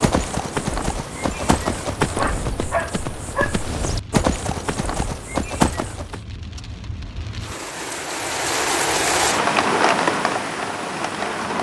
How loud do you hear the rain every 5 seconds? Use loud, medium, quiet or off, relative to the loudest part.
quiet, loud, loud.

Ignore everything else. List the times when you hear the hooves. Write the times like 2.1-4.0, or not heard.
0.0-6.2.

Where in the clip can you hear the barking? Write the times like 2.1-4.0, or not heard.
2.1-3.6.